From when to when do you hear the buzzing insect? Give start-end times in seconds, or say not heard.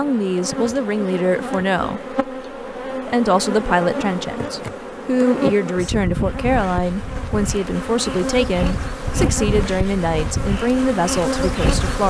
0.0-12.0.